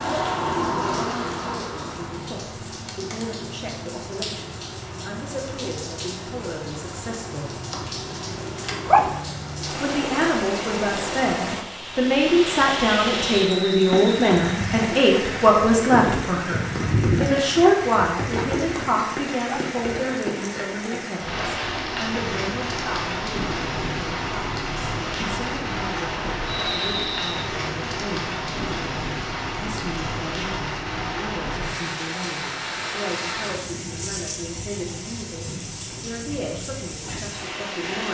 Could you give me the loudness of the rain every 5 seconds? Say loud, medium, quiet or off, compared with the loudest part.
loud, medium, loud, loud, loud, loud, loud, medium.